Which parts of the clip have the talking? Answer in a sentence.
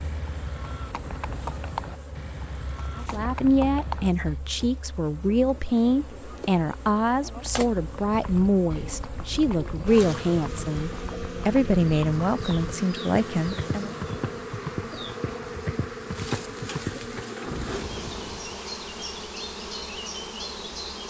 You can hear the talking from 3.0 to 13.9 s.